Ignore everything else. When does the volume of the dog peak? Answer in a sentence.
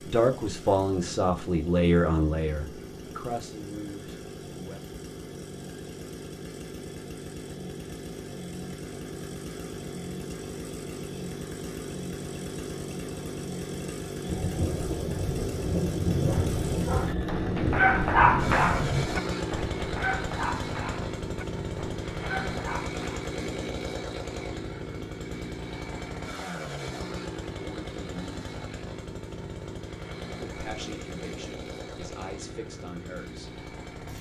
The volume of the dog peaks at 18 seconds.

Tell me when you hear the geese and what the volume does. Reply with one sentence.
You can't hear the geese here.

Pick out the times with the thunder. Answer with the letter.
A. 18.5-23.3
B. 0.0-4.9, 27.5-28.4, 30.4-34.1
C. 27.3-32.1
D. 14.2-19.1
D.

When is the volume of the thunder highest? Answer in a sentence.
The volume of the thunder peaks at 16 seconds.